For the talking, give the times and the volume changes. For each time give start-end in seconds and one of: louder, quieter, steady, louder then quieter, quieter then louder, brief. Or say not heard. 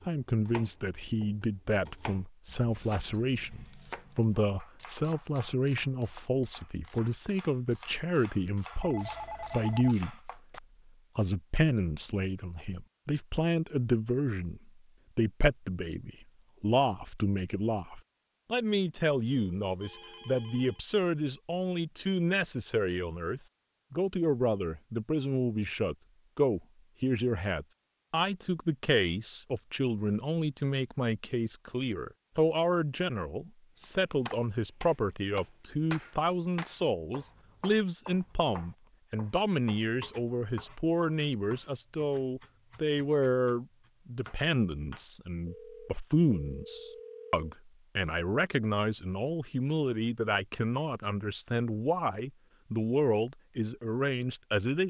0.1-54.8 steady.